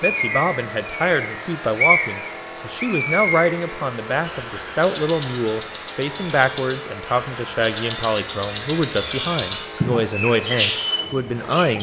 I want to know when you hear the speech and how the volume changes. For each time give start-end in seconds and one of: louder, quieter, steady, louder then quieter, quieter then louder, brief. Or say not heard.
0.0-11.7 steady.